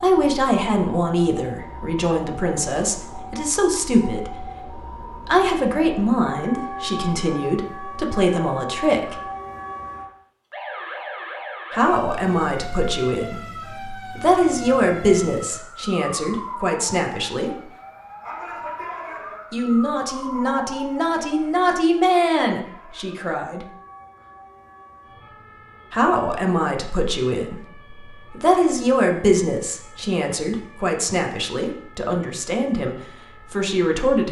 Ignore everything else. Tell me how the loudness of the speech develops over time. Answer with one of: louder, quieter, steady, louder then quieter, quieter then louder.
steady.